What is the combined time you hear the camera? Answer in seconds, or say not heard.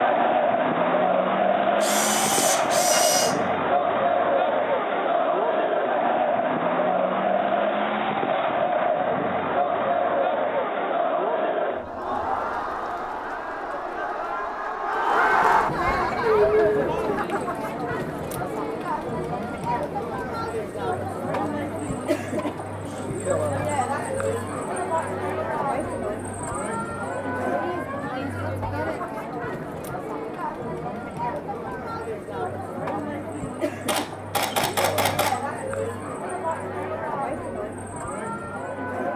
3 s.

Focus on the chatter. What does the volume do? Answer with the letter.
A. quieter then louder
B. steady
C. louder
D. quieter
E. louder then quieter
D.